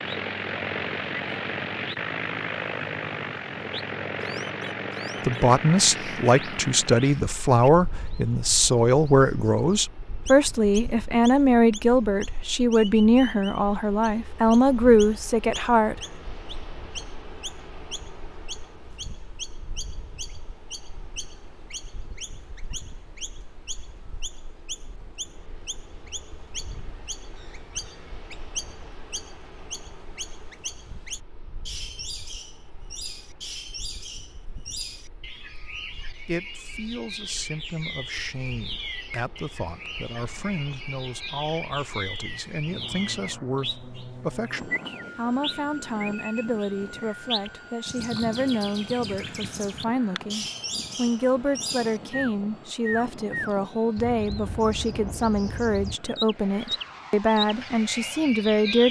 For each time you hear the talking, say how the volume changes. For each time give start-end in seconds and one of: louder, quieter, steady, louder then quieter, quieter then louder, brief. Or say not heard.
5.2-15.9 steady
36.1-58.8 louder.